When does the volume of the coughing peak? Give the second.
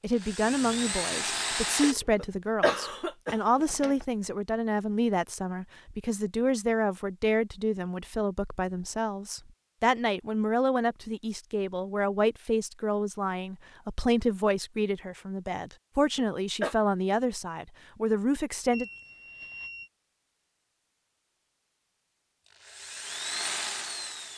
3 s.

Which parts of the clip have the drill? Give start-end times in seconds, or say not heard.
0.0-1.9, 22.4-24.3.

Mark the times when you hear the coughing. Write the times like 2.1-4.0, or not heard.
2.1-4.0, 16.1-16.8.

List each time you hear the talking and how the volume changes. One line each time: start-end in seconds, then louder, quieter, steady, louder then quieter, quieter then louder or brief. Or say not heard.
0.0-18.9 steady.